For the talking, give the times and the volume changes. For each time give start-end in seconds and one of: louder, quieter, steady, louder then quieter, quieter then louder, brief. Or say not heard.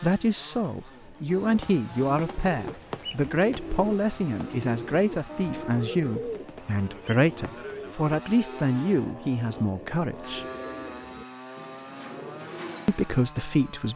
0.0-10.4 steady
12.8-13.9 brief.